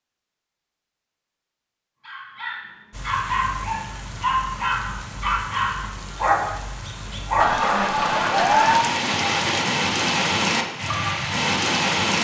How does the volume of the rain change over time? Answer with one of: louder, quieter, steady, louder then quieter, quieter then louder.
louder.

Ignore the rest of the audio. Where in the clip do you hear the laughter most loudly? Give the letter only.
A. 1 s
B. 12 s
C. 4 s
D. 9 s
D.